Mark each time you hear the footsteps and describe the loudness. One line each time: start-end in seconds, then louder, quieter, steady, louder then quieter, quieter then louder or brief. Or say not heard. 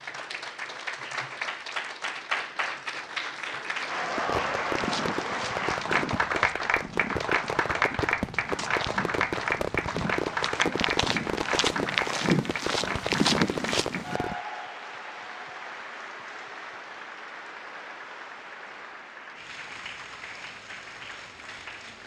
4.8-14.2 louder.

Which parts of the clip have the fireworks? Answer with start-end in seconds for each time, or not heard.
4.2-14.3.